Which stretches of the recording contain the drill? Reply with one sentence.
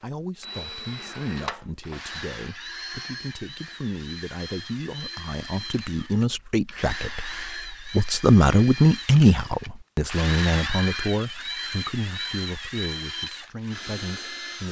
The drill can be heard from 0.0 to 14.6 s.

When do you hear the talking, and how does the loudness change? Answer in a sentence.
The talking can be heard from 0.0 to 14.6 s, getting louder then quieter.